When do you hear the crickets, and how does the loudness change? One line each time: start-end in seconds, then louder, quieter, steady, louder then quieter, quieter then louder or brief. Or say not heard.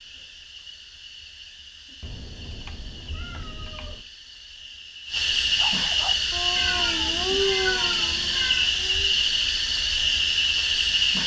0.0-11.2 louder.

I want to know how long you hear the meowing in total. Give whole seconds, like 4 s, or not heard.
4 s.